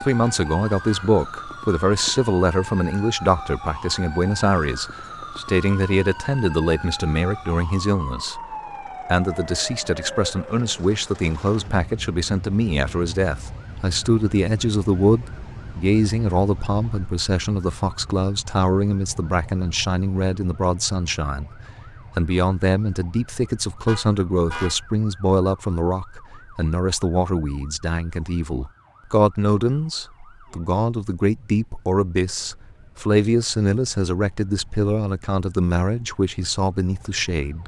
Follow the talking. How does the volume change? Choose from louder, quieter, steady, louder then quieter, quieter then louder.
steady.